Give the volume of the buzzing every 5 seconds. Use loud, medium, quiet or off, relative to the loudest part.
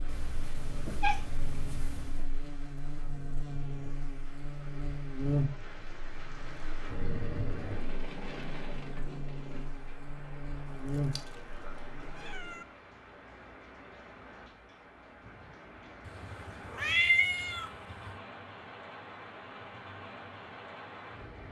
medium, loud, loud, off, off.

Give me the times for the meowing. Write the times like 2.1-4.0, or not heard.
0.1-2.2, 10.8-11.6, 12.2-12.7, 16.1-18.1.